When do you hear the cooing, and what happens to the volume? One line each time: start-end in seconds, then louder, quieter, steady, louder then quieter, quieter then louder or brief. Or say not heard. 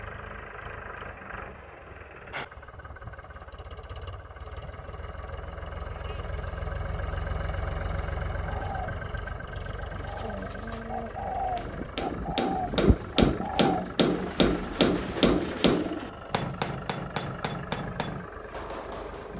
8.4-16.1 louder.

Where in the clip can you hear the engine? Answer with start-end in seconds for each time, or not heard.
0.0-19.3.